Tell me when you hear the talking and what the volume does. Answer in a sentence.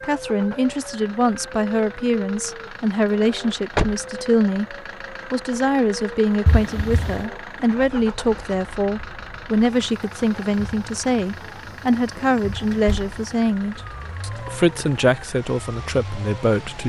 The talking can be heard from 0.0 to 16.8 s, at a steady volume.